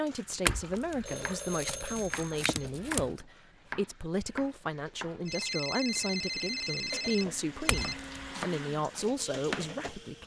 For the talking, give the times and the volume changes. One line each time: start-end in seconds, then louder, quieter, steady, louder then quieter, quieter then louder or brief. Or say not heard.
0.0-10.2 steady.